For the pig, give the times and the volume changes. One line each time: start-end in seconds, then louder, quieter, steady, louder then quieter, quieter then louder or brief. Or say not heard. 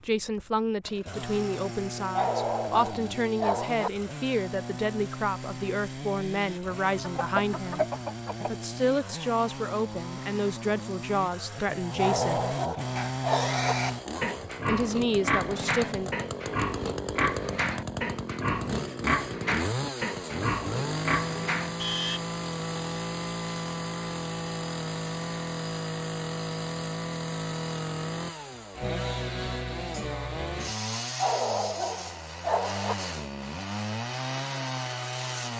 12.9-22.2 steady.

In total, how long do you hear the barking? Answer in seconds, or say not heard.
5 s.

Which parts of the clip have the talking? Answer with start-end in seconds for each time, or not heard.
0.1-7.8, 8.5-12.5, 14.7-16.1.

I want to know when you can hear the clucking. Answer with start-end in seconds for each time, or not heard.
7.0-8.5.